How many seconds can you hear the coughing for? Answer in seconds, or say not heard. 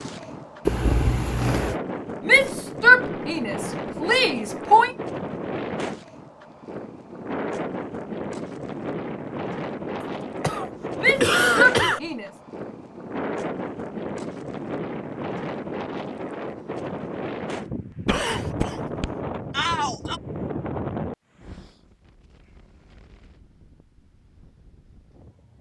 4 s.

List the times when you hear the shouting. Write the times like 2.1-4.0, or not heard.
2.2-5.0, 11.0-12.3, 19.5-20.2.